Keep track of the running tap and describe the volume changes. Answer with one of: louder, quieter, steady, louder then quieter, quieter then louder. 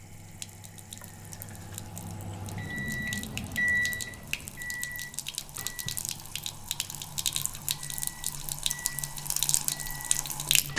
louder.